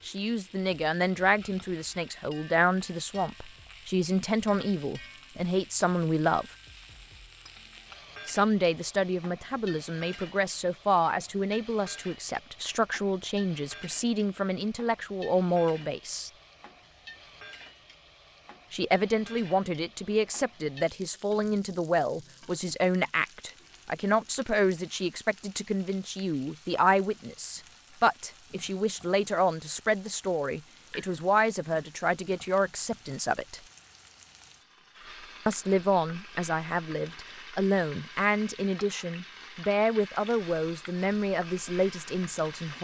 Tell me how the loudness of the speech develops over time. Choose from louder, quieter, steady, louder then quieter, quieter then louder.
steady.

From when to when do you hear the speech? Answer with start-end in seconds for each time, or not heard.
0.1-6.5, 8.2-16.3, 18.7-33.6, 35.5-42.7.